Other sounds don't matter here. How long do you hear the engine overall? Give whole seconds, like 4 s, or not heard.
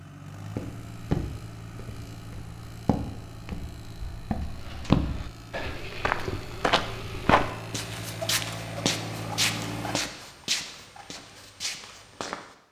10 s.